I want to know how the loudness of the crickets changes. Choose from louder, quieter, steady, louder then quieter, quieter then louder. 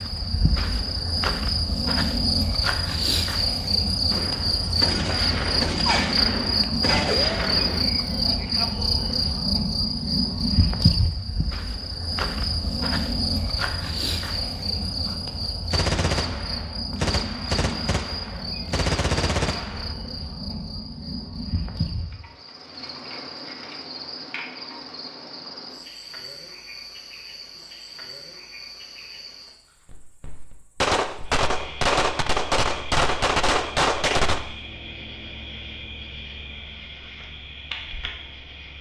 quieter.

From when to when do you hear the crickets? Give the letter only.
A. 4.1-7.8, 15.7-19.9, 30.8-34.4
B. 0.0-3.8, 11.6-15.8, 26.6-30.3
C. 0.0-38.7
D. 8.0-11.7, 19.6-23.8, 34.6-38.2
C.